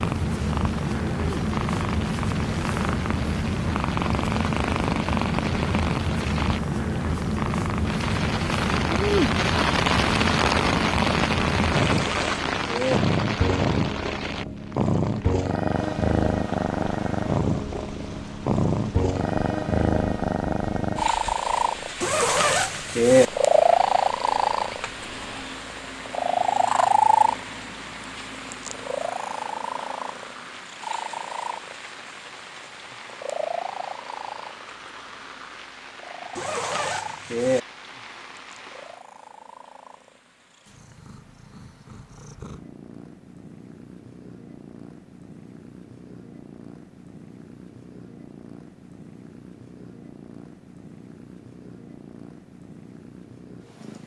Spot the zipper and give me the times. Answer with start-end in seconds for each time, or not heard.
11.8-13.0, 22.0-23.2, 36.4-37.6.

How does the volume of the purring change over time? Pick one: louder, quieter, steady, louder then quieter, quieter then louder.
quieter.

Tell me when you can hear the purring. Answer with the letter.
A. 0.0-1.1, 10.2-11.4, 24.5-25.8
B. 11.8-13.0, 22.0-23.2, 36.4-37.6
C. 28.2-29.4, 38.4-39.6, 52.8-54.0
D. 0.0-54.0
D.